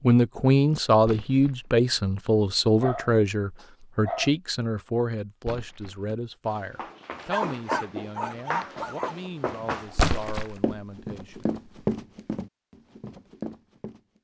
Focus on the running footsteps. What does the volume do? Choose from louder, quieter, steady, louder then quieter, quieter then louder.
louder then quieter.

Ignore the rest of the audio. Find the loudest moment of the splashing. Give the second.
10 s.